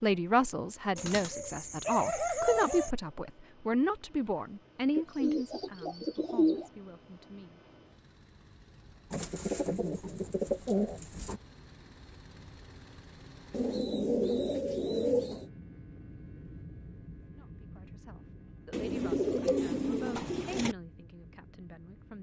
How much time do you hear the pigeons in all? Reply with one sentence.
The pigeons can be heard for 10 seconds in total.